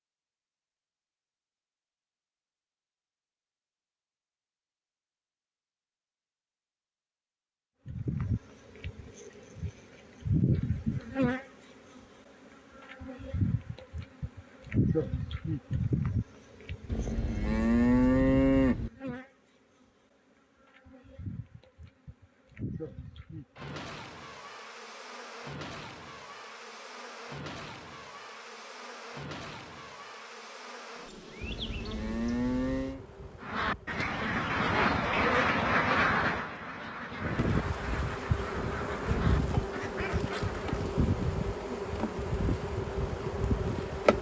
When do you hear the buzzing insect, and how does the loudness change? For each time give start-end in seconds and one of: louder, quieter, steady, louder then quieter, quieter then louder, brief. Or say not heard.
7.8-34.0 quieter
37.1-44.1 steady.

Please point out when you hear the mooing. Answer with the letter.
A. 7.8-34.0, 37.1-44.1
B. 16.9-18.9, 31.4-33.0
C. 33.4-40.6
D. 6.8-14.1
B.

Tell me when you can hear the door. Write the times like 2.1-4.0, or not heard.
not heard.